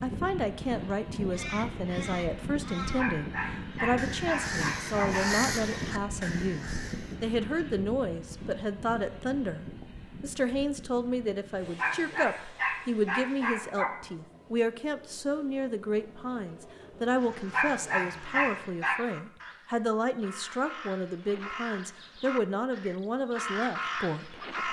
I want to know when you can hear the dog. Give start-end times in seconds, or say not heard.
3.0-5.5, 11.8-13.9, 17.5-19.1.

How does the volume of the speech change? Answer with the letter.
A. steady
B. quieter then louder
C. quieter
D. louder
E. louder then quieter
A.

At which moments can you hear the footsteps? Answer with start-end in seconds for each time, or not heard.
not heard.